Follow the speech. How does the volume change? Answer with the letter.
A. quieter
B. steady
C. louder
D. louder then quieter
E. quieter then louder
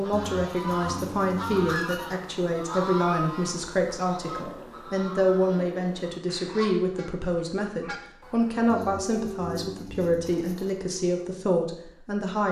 B.